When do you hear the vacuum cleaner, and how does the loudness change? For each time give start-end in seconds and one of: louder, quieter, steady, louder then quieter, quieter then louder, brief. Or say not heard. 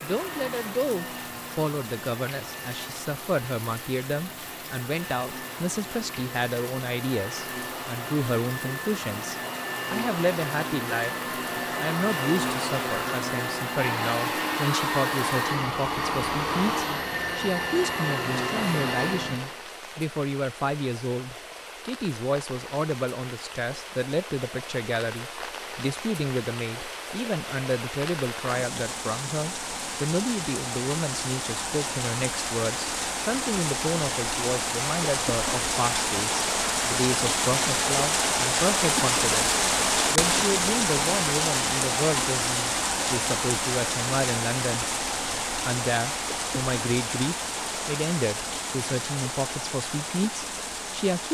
0.0-19.6 louder.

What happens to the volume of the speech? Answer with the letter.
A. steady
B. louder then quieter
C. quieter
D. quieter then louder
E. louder
A.